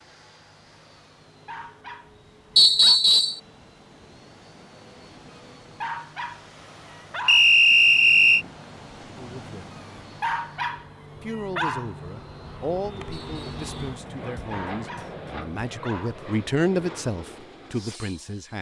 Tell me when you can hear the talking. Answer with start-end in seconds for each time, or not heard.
9.1-9.8, 11.2-18.5.